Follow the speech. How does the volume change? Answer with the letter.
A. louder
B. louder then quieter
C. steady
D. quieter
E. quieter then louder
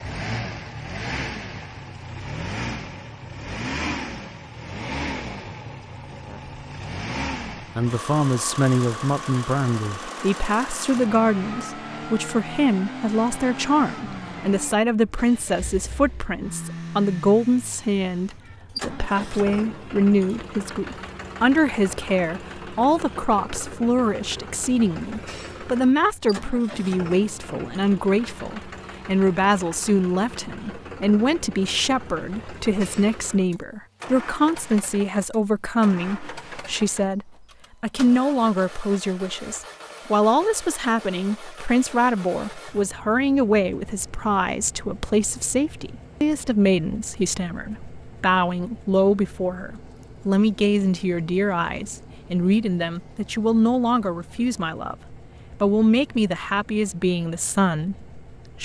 C.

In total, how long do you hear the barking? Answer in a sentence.
You can't hear the barking here.